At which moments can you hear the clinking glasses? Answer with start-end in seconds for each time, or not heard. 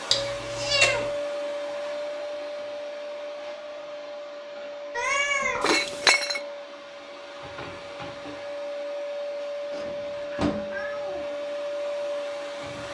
5.6-6.4.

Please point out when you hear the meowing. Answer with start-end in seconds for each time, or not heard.
0.1-1.0, 4.9-5.8, 9.7-11.2.